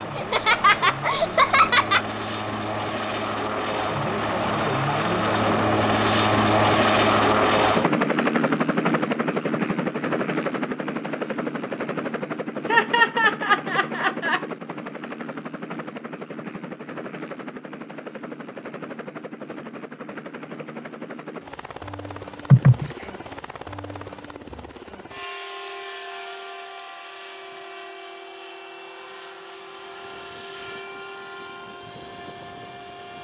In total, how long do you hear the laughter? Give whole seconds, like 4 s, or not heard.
4 s.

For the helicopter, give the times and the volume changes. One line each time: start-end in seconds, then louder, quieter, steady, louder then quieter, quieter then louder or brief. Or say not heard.
0.0-33.1 quieter.